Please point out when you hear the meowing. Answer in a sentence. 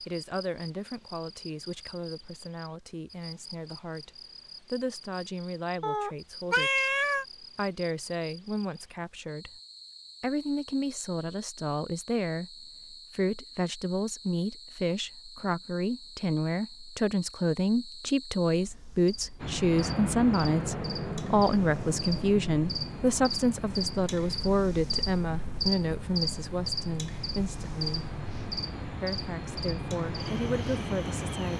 You can hear the meowing from 5.8 to 7.2 s.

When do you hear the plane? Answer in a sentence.
The plane can be heard from 19.4 to 31.5 s.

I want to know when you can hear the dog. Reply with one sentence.
You can't hear the dog here.